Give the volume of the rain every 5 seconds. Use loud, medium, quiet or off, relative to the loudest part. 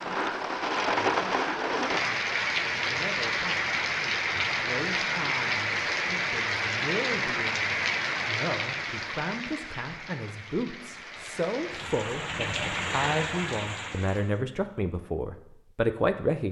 loud, loud, medium, off.